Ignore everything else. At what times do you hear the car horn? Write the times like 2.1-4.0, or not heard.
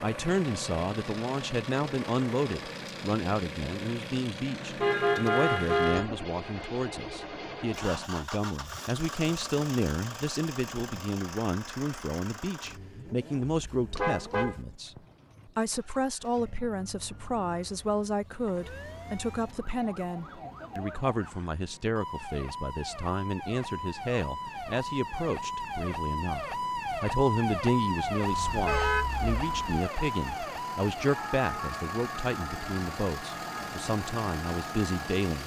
4.8-6.1, 13.9-15.4, 28.3-29.8.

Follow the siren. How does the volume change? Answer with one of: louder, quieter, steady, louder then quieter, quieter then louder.
louder then quieter.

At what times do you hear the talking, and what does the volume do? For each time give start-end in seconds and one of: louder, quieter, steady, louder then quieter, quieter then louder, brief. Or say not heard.
0.0-35.4 steady.